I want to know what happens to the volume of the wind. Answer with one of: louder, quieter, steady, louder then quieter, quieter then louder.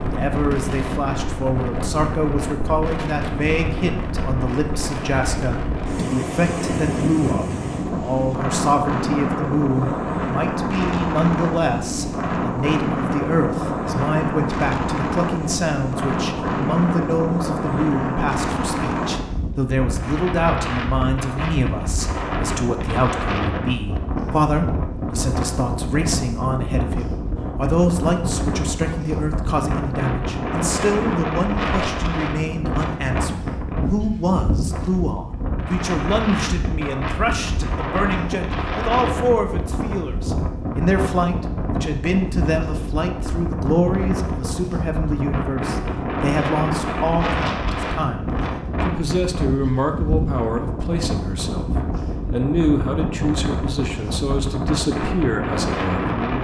steady.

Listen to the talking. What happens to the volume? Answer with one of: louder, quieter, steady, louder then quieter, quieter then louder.
steady.